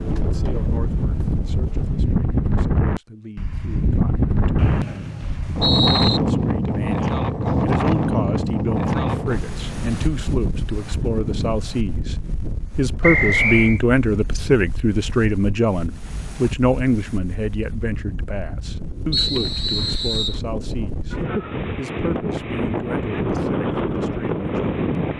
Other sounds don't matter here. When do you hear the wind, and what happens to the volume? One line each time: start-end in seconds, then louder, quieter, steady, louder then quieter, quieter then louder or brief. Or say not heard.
0.0-25.1 quieter then louder.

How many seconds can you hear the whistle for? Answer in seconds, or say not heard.
4 s.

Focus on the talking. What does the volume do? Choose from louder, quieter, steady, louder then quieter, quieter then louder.
louder then quieter.